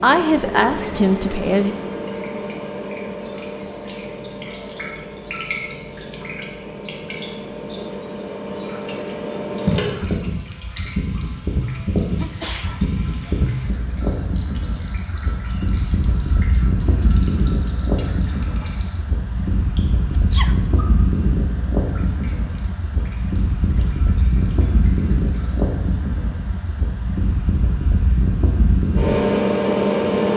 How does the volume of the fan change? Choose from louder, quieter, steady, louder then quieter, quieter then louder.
louder.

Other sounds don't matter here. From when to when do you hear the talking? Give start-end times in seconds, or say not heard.
0.0-1.8.